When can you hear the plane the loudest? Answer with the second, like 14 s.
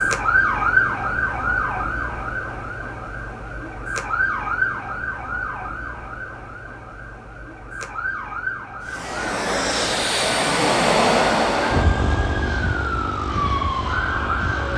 11 s.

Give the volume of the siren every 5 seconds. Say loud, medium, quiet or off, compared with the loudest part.
loud, medium, loud.